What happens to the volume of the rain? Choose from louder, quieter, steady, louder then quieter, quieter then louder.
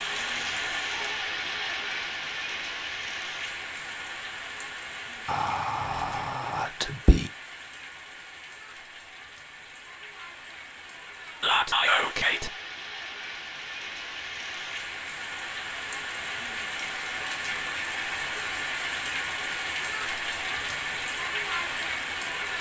quieter then louder.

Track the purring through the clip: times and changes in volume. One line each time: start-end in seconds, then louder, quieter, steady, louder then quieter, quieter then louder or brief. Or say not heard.
not heard.